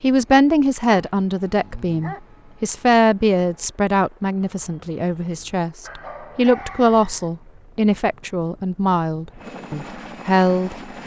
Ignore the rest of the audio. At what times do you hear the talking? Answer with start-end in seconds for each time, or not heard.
0.0-11.0.